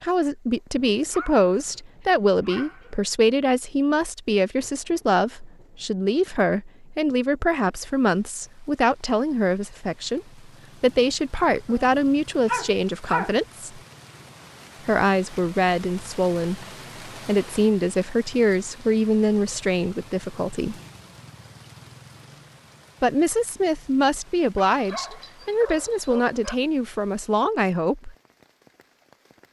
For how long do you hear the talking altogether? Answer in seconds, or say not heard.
25 s.